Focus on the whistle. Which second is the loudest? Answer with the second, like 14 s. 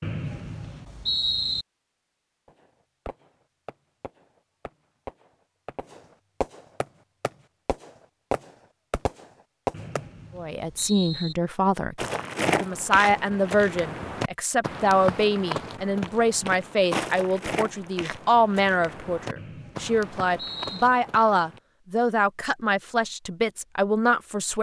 1 s.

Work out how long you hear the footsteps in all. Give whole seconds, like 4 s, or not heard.
10 s.